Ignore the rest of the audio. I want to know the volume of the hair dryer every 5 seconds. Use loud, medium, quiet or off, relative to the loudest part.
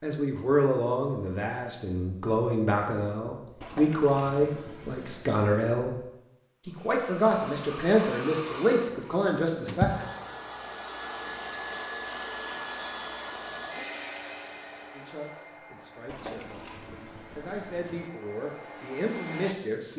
off, loud, loud, medium.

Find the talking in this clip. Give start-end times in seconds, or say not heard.
0.0-6.0, 6.7-9.9, 14.9-16.6, 17.4-19.9.